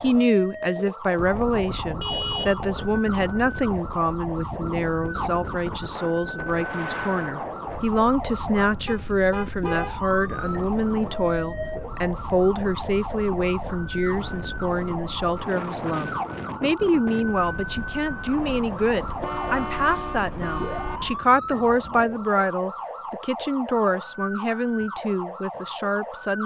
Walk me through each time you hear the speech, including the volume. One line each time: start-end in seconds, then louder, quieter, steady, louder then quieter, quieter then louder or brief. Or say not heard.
0.0-26.4 steady.